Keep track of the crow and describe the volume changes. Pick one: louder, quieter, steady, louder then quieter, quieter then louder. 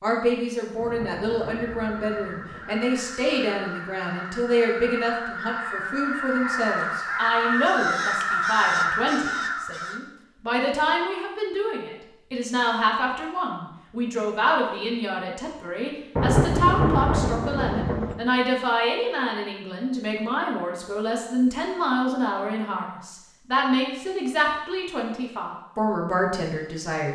louder.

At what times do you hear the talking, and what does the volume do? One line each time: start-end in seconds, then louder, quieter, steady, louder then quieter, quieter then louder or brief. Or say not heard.
0.0-27.0 steady.